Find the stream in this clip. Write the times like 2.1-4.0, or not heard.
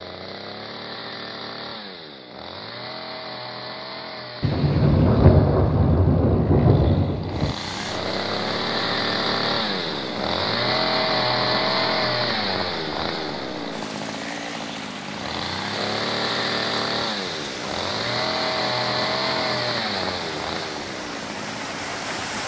7.3-22.4.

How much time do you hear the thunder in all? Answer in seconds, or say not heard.
3 s.